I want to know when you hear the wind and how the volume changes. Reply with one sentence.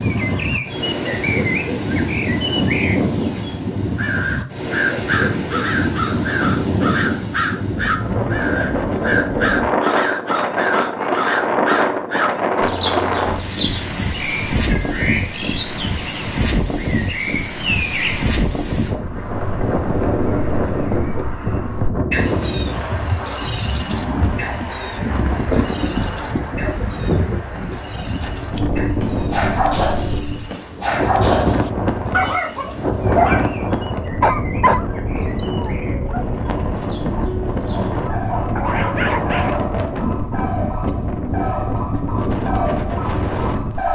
The wind can be heard from 0.0 to 43.9 s, at a steady volume.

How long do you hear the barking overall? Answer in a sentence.
You can hear the barking for 10 seconds altogether.